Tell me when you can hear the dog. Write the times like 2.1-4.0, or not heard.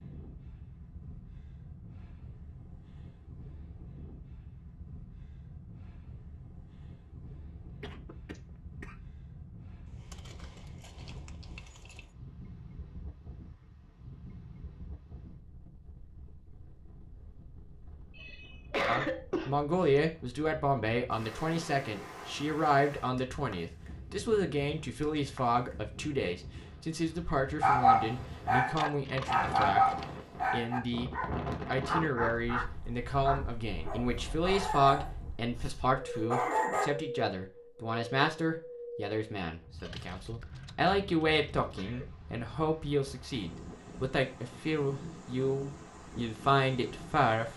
27.6-36.9.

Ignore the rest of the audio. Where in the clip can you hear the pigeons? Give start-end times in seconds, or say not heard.
not heard.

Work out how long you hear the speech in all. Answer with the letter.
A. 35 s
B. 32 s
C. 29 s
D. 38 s
C.